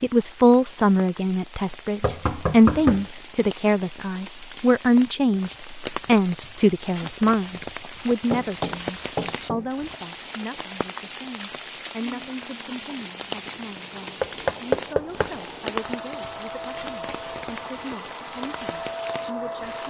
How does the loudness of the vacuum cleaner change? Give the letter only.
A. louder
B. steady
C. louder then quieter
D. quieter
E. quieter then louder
A.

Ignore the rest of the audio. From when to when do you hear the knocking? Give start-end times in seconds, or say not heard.
2.0-3.1, 8.2-9.7, 14.2-15.3.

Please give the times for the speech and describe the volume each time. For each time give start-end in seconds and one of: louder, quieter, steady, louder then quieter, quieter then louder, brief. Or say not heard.
0.0-19.8 quieter.